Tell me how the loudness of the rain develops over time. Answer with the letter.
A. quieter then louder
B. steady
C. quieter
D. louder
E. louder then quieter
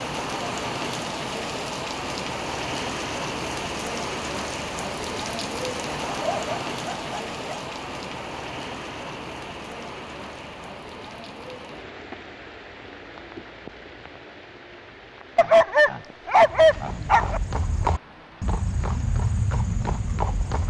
C.